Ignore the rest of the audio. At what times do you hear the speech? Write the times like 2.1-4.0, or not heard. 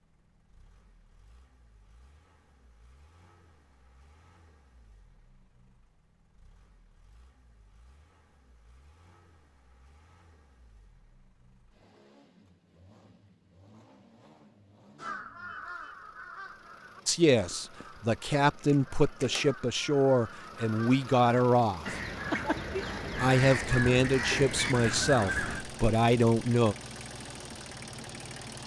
17.1-21.9, 23.1-26.8.